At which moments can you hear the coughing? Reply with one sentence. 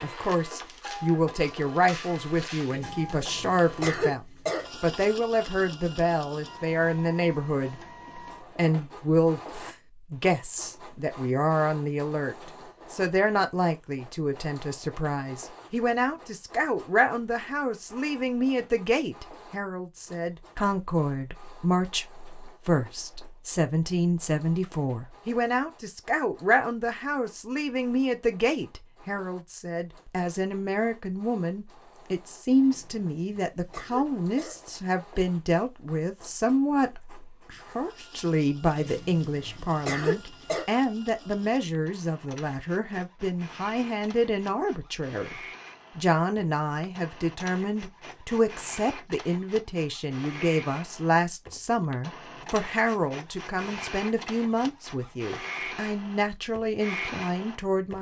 The coughing can be heard from 2.7 to 4.7 s, from 32.6 to 34.6 s and from 38.8 to 40.6 s.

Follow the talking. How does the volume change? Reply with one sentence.
The volume of the talking stays about the same.